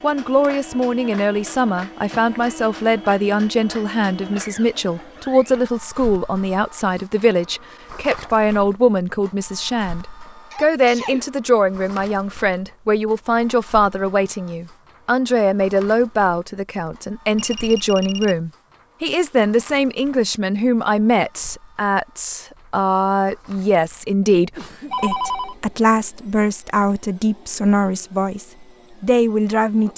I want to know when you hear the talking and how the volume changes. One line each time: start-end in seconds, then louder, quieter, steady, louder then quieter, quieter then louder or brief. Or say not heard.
0.0-29.9 steady.